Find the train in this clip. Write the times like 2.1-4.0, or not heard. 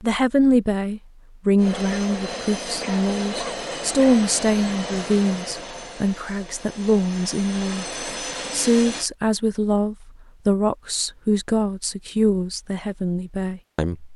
1.6-9.1.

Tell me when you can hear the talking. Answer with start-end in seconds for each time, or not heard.
0.0-7.8, 8.5-14.1.